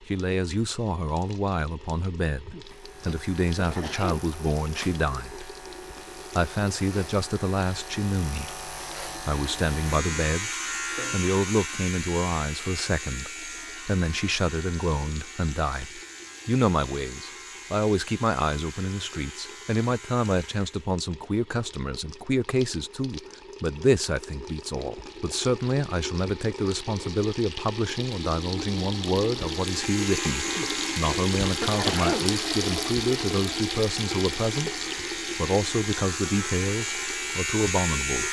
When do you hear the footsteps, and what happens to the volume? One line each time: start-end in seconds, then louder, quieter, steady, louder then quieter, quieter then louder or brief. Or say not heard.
not heard.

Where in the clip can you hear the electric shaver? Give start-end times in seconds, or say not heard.
2.6-20.9, 29.4-38.2.